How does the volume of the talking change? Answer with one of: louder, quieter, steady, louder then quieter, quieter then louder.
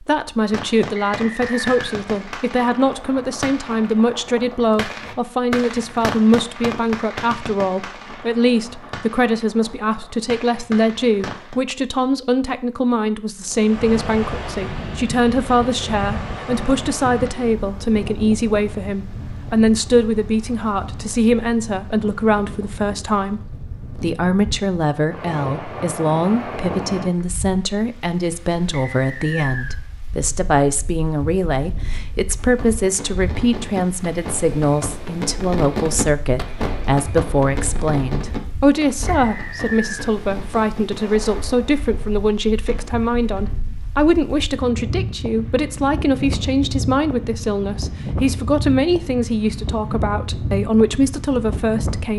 steady.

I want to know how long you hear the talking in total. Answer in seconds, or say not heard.
52 s.